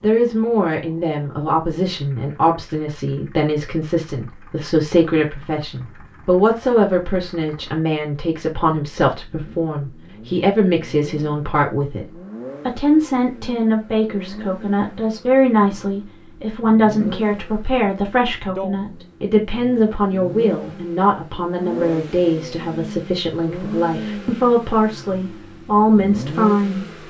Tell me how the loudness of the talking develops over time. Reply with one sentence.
The loudness of the talking stays about the same.